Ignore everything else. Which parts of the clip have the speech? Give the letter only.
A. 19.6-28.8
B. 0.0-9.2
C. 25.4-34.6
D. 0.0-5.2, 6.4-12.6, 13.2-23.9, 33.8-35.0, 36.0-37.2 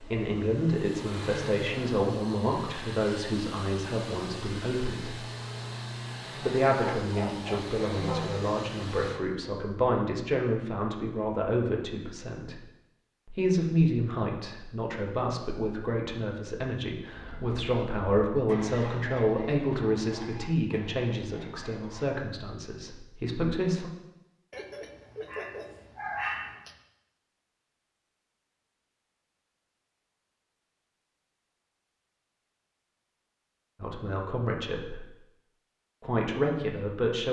D.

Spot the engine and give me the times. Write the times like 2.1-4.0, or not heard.
0.0-9.2.